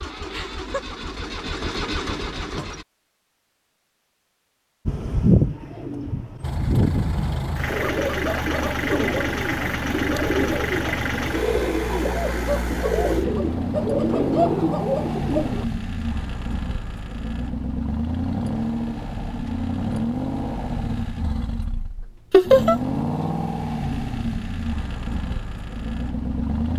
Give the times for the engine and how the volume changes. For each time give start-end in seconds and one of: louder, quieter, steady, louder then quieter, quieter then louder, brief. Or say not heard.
0.0-2.9 brief
6.4-26.7 steady.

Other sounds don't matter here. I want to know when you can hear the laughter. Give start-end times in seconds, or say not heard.
0.3-0.8, 22.3-22.8.